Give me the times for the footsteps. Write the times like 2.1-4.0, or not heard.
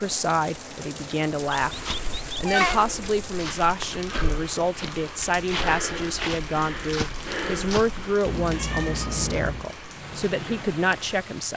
1.6-8.2.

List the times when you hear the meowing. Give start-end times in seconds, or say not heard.
1.6-2.8, 8.2-9.7.